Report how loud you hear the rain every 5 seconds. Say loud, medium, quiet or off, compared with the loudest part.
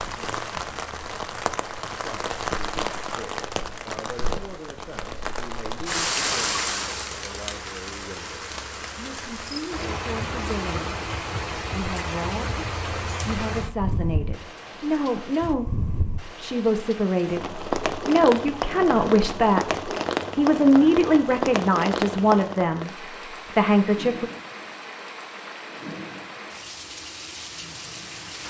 loud, loud, loud, loud, loud, medium.